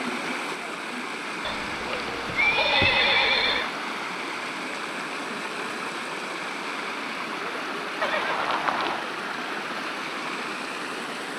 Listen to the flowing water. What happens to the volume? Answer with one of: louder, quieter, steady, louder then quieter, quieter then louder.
steady.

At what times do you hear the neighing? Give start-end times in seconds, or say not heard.
1.4-3.7, 8.0-9.1.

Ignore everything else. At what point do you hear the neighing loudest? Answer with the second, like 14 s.
3 s.